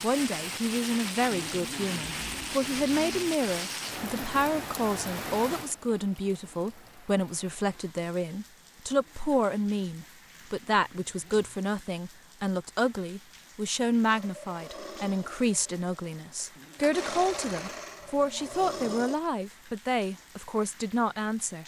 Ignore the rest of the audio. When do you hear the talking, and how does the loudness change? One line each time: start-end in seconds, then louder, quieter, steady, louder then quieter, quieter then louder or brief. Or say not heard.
0.0-21.6 steady.